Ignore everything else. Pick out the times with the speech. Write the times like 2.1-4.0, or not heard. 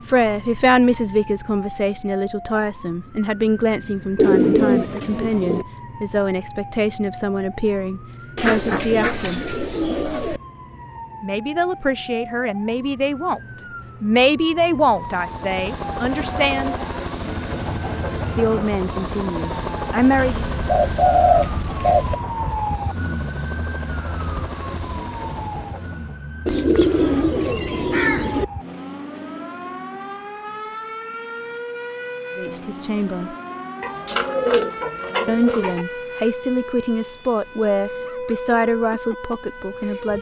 0.1-9.6, 11.2-13.4, 14.0-16.8, 18.4-20.4, 32.4-33.4, 35.2-40.1.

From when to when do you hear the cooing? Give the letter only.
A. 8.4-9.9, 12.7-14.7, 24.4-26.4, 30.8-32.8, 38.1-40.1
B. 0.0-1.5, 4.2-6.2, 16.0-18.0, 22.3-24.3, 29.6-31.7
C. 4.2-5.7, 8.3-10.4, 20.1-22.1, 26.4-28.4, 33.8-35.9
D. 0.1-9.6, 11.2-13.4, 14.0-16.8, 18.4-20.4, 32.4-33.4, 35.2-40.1
C.